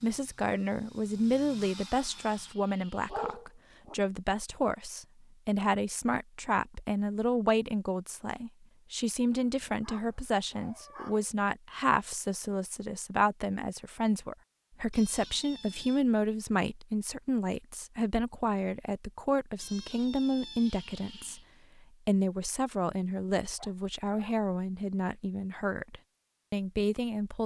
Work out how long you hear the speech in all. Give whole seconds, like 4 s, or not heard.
27 s.